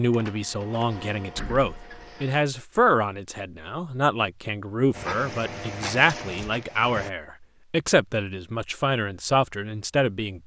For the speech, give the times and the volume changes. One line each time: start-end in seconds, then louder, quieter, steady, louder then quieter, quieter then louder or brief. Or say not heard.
0.0-10.4 steady.